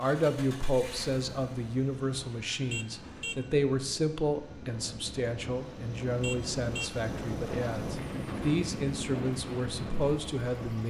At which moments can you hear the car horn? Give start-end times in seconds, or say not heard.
2.6-3.5, 6.2-7.0.